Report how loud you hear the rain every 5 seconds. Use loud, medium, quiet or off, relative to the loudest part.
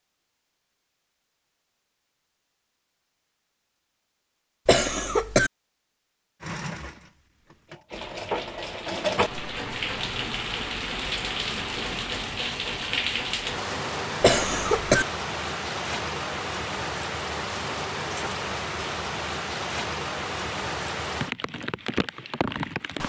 off, medium, loud, loud, loud.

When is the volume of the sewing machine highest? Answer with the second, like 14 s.
9 s.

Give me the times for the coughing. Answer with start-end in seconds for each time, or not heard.
4.7-5.5, 14.2-15.1.